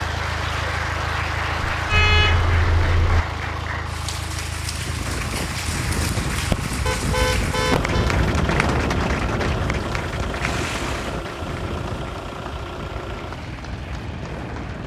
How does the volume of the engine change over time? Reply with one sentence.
The loudness of the engine stays about the same.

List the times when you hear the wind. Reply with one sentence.
The wind can be heard from 4.7 to 14.8 s.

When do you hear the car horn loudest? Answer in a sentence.
The volume of the car horn peaks at 2 seconds.